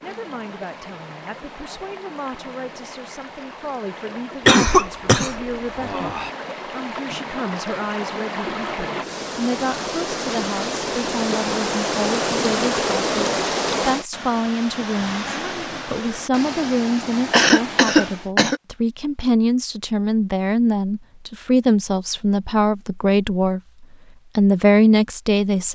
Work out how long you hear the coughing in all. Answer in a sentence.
The coughing can be heard for 3 seconds in total.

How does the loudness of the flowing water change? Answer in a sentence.
The loudness of the flowing water goes up, then down.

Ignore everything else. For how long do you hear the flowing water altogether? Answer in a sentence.
The flowing water can be heard for 18 seconds in total.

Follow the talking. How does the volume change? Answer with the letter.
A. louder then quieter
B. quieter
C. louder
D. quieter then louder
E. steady
C.